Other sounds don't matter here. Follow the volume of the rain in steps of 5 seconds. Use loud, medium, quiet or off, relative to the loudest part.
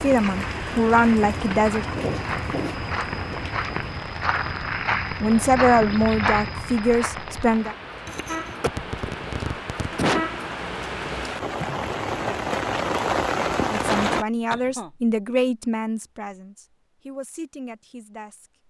medium, medium, loud, off.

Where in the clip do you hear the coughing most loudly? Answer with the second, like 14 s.
10 s.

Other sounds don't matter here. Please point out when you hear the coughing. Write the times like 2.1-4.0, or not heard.
1.9-2.8, 8.1-10.2, 13.8-14.9.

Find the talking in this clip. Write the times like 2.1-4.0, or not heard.
0.0-1.9, 5.2-7.8, 13.7-18.5.